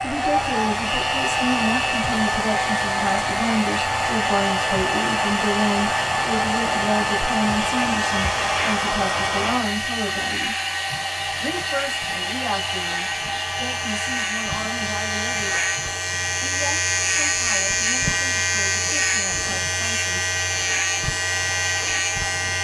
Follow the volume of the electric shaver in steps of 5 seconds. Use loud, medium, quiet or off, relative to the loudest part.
medium, medium, medium, loud, loud.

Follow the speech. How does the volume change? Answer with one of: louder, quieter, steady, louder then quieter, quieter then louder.
quieter.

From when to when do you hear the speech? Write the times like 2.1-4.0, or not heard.
0.0-10.6, 11.4-15.5, 16.4-20.3.